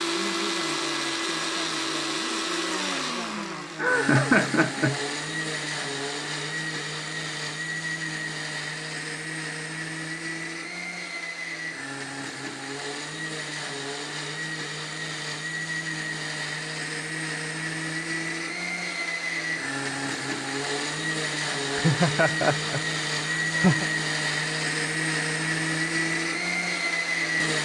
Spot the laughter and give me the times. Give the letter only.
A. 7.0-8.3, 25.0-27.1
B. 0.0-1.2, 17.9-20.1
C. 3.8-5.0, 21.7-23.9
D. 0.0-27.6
C.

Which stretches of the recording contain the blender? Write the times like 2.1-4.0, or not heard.
0.0-27.6.